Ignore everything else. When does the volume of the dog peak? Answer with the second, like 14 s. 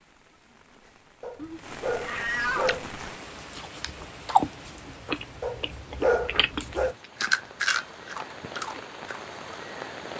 6 s.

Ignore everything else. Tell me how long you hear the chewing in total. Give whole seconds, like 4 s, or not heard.
7 s.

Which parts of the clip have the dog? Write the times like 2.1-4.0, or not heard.
1.2-2.9, 5.4-7.0.